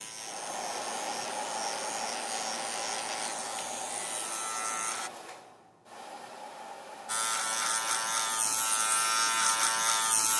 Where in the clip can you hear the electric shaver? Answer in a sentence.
You can hear the electric shaver from 0.0 to 5.1 s and from 7.0 to 10.3 s.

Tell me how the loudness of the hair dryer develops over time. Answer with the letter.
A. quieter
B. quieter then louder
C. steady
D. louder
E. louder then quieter
A.